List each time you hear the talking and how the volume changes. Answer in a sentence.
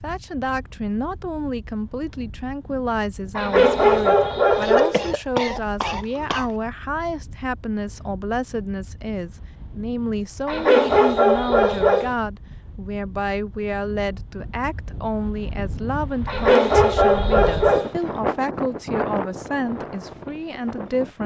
You can hear the talking from 0.0 to 21.2 s, at a steady volume.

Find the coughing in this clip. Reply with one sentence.
You can hear the coughing from 4.6 to 6.5 s.